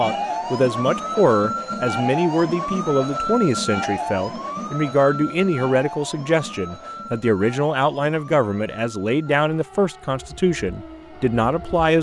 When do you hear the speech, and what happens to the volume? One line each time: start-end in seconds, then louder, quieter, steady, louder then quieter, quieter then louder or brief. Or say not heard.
0.0-11.9 steady.